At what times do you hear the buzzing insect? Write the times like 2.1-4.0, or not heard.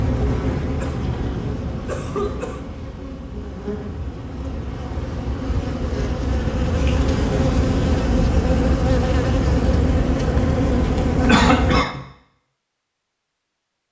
0.0-11.8.